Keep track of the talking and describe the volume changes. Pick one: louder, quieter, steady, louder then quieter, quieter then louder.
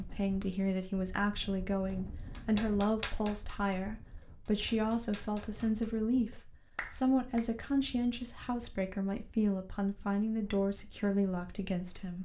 steady.